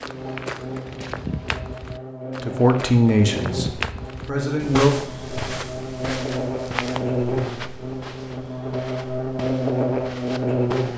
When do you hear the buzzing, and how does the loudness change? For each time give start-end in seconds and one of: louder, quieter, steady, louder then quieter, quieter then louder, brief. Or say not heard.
0.0-10.9 louder.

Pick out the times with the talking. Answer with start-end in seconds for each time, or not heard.
2.4-5.0.